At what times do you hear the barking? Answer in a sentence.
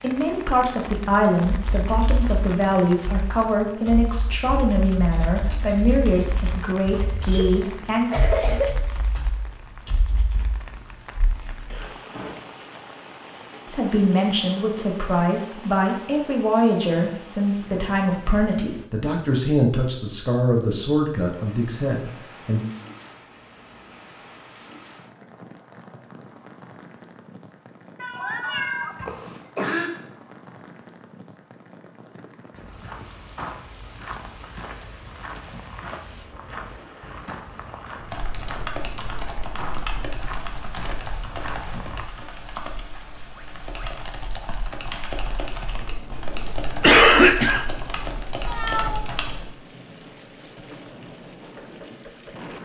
The barking can't be heard in this clip.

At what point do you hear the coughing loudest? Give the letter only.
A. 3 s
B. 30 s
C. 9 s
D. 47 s
D.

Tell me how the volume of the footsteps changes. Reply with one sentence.
The loudness of the footsteps stays about the same.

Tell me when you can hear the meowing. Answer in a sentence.
You can hear the meowing from 6.8 to 7.6 s, from 27.9 to 29.1 s and from 48.5 to 49.5 s.